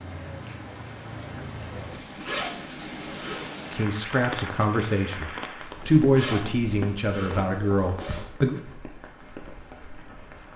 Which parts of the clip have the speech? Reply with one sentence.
The speech can be heard from 3.7 to 8.6 s.